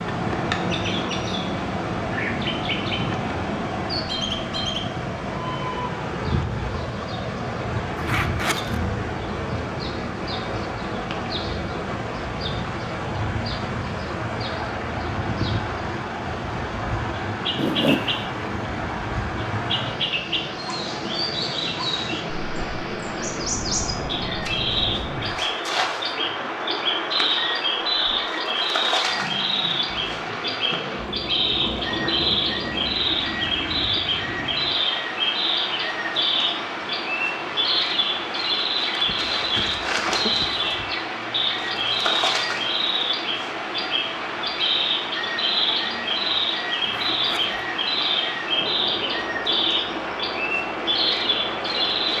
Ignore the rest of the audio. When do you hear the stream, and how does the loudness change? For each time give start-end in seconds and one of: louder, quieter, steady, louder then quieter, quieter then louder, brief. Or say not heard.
0.0-52.1 steady.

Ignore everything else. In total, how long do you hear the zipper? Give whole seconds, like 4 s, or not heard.
3 s.